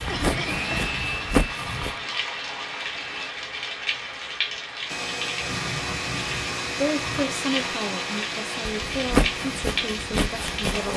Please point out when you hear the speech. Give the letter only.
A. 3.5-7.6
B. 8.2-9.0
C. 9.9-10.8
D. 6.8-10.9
D.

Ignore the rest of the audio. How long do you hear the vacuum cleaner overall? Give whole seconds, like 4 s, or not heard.
9 s.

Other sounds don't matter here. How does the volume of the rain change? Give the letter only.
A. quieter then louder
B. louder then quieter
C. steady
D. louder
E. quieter
C.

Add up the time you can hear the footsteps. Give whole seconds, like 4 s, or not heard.
4 s.